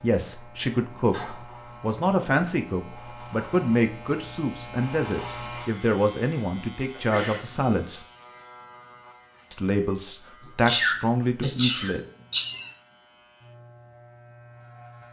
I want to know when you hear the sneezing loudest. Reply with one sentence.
The loudest moment of the sneezing is at 11 seconds.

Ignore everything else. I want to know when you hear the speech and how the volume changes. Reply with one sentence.
You can hear the speech from 0.0 to 8.1 s, at a steady volume; and briefly from 9.5 to 12.0 s.